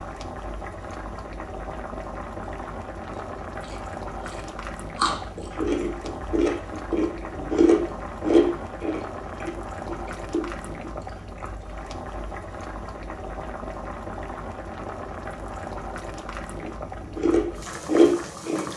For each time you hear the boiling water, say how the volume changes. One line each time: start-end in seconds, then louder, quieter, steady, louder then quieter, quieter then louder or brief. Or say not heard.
0.0-18.7 steady.